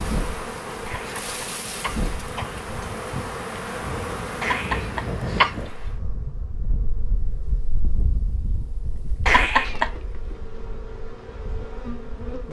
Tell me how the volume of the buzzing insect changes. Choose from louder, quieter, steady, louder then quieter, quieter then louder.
quieter then louder.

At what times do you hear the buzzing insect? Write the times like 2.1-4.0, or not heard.
0.0-12.4.